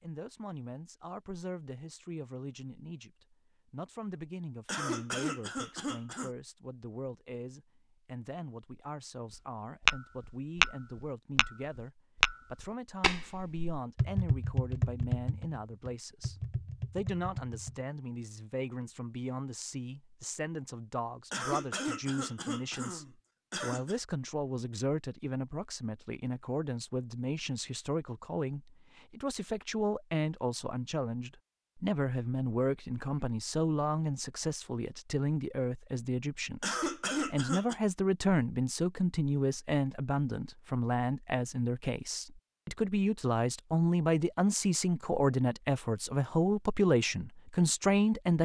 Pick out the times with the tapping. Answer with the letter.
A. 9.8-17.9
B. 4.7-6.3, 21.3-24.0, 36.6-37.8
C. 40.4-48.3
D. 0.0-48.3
A.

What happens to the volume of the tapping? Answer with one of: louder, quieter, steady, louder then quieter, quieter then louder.
quieter.